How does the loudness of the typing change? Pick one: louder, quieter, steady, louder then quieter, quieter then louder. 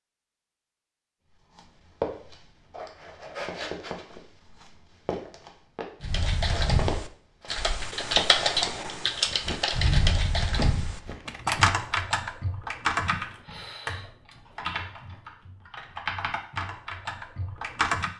quieter.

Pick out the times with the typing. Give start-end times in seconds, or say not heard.
6.0-18.1.